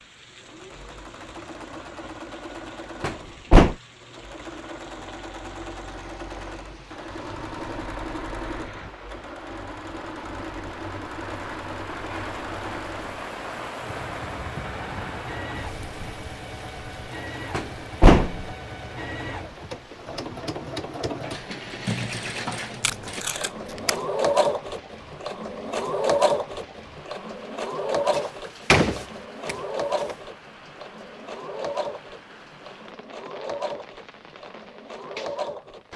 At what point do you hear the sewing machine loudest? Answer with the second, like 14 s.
26 s.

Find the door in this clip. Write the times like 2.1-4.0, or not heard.
3.0-3.8, 17.5-18.4, 28.1-29.6.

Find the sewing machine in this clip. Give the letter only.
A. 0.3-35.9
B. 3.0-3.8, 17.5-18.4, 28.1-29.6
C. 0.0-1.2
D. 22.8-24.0
A.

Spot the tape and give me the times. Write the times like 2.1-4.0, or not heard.
22.8-24.0.